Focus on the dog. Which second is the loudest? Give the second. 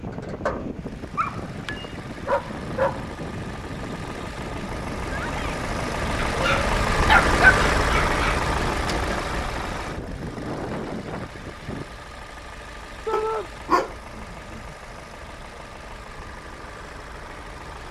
7 s.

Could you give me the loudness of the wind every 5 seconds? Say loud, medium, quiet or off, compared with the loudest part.
loud, loud, loud, off.